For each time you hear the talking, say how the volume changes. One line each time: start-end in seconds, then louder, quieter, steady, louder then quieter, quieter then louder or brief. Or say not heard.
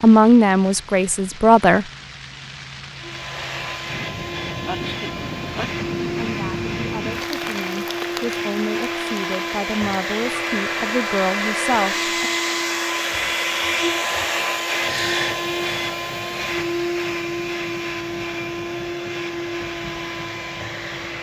0.0-1.9 brief
6.1-12.3 louder.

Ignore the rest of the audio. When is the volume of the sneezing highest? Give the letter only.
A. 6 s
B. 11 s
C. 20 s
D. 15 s
D.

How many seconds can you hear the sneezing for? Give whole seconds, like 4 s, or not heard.
2 s.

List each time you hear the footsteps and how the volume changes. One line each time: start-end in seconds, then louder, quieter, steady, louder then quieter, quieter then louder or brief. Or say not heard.
not heard.